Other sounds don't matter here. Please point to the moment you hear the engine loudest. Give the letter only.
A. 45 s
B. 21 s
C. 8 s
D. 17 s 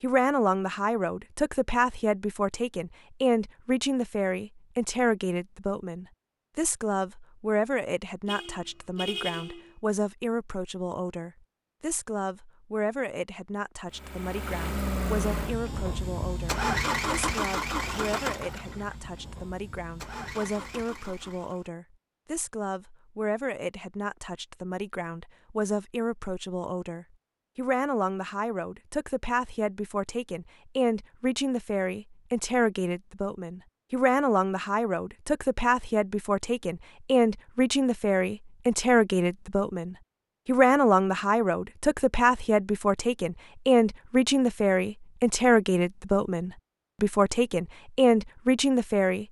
D.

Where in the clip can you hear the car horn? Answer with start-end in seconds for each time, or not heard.
8.2-9.8.